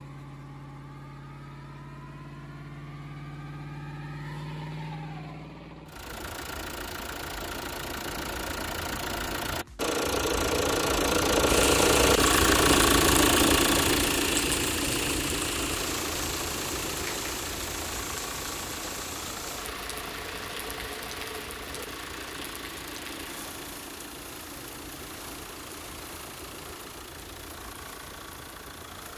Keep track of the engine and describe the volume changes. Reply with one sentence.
The loudness of the engine goes up, then down.